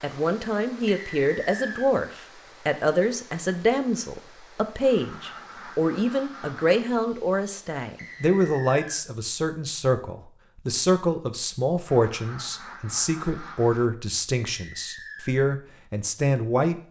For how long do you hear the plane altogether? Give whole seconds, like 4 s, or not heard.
not heard.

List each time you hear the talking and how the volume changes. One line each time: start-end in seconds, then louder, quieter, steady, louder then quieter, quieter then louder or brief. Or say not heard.
0.0-16.8 steady.